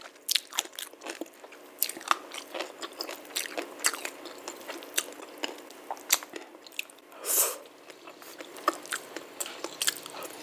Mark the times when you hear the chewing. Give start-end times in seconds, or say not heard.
0.0-10.3.